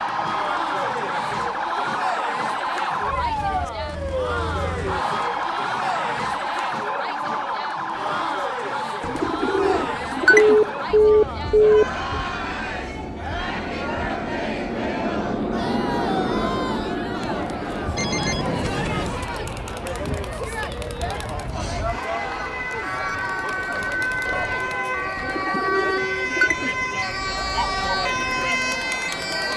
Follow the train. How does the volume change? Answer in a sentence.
The volume of the train goes up.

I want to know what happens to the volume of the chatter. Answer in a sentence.
The loudness of the chatter stays about the same.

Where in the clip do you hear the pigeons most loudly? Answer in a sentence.
The volume of the pigeons peaks at 10 seconds.